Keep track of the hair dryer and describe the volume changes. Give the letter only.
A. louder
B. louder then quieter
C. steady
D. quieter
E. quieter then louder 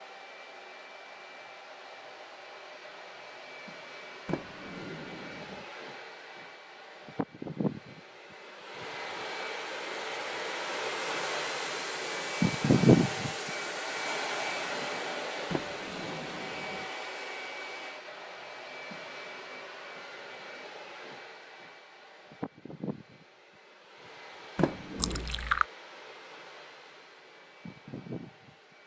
B.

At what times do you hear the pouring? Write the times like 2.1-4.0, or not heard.
24.9-25.6.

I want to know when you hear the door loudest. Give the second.
25 s.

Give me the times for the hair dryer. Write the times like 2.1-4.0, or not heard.
0.0-28.8.